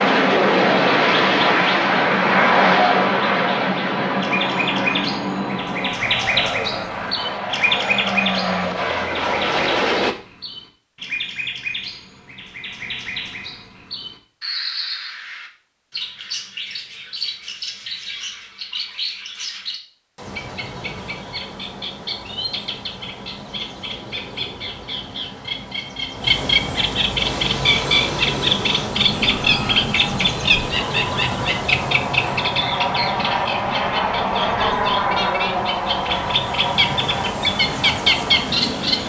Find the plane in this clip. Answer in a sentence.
The plane can be heard from 0.0 to 10.2 s and from 27.1 to 39.0 s.